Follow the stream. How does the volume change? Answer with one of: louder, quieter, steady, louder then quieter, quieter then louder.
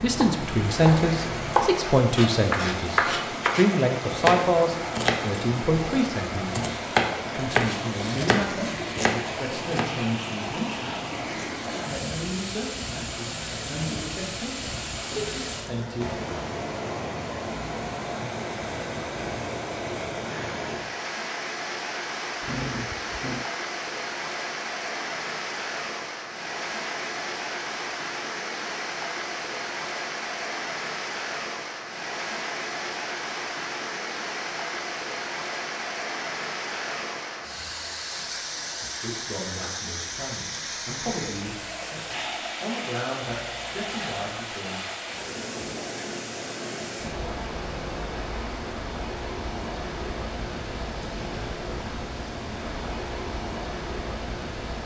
steady.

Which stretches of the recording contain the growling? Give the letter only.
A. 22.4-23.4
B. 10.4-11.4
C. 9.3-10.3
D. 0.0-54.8
A.